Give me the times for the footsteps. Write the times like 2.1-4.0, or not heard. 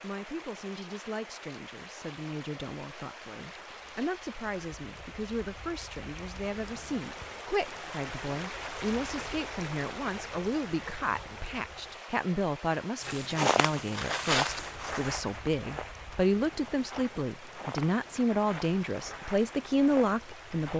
13.0-20.7.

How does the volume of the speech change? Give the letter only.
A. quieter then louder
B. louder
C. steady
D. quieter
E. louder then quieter
B.